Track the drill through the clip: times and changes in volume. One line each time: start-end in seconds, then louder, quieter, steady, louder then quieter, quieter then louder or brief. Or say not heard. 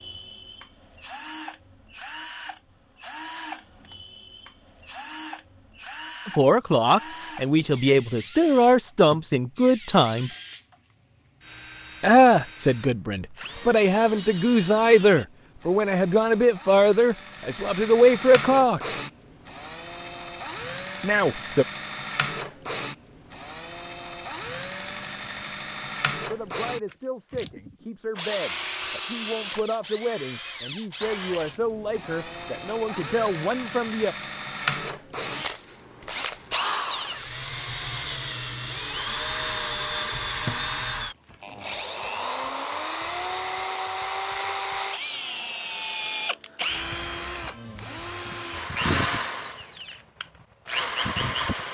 0.0-51.6 louder.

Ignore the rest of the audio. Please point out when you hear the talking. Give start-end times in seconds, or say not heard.
6.2-10.3, 12.0-18.9, 21.0-21.6, 26.3-34.1.